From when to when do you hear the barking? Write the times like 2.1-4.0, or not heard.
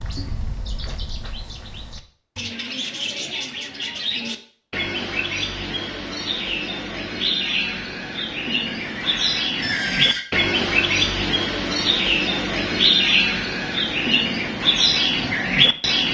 not heard.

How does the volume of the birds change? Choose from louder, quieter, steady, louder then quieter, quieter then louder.
louder.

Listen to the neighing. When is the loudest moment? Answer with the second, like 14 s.
10 s.